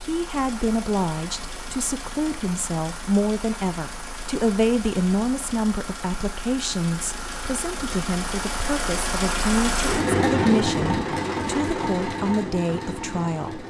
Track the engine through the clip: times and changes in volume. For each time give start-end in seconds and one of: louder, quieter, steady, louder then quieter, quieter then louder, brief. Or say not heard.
0.0-13.6 louder.